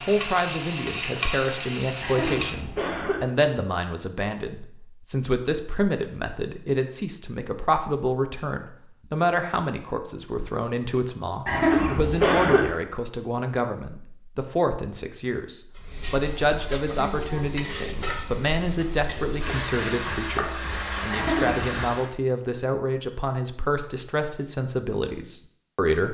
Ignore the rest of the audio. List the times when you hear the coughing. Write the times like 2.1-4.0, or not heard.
2.0-3.2, 11.4-12.7, 21.1-21.7.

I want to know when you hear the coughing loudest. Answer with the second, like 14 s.
12 s.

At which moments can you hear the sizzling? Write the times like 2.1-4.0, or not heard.
0.0-2.6, 15.7-22.1.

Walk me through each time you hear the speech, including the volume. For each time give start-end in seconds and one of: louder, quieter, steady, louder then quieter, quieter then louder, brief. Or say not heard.
0.0-26.1 steady.